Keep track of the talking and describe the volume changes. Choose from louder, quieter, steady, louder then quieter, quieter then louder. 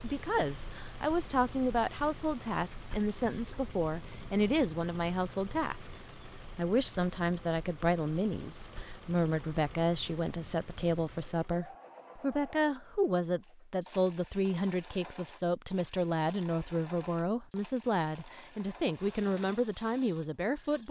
steady.